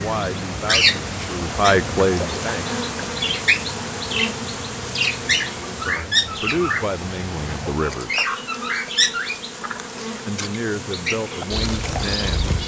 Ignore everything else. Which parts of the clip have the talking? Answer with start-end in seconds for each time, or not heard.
0.0-2.7, 5.8-8.2, 10.2-12.6.